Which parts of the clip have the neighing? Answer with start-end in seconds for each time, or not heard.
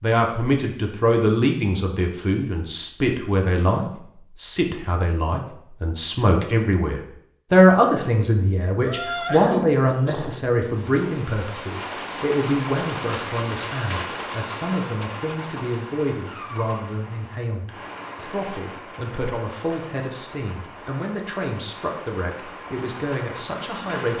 8.8-10.4.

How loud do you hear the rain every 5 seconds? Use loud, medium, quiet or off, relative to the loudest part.
off, off, loud, medium, medium.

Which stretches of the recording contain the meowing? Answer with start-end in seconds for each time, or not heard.
16.2-16.9.